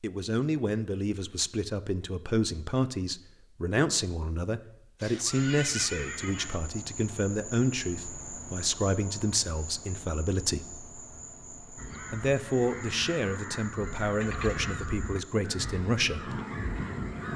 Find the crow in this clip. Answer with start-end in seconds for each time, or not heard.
11.8-17.3.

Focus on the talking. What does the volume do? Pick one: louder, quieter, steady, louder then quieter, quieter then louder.
steady.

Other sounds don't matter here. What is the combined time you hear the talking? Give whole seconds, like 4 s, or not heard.
15 s.